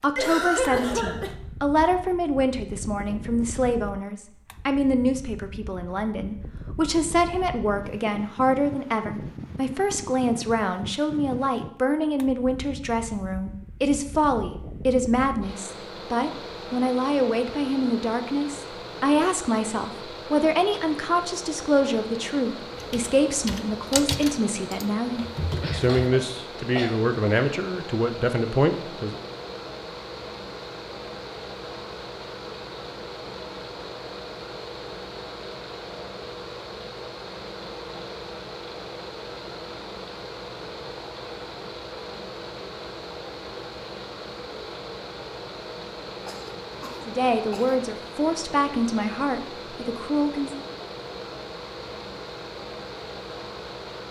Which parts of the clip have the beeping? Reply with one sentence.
The beeping can't be heard in this clip.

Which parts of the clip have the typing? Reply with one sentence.
The typing can be heard from 22.8 to 26.0 s.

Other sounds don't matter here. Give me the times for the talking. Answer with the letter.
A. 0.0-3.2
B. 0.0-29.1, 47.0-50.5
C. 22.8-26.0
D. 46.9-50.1
B.